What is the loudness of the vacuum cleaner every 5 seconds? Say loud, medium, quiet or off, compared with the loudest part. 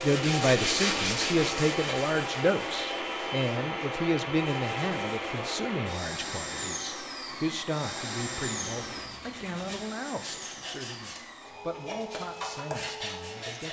loud, loud, medium.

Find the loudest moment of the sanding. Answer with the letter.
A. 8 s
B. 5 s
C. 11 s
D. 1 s
D.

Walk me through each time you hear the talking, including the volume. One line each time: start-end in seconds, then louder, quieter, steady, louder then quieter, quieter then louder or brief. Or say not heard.
0.0-13.6 quieter.